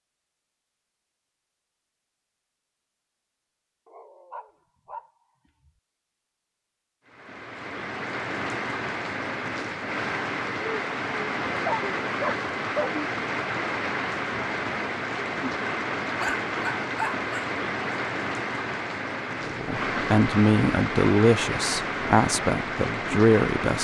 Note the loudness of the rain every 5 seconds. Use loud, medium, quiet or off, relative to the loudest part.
off, loud, loud, loud, loud.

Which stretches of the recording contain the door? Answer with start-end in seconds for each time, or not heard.
not heard.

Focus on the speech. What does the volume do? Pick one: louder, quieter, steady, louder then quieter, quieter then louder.
steady.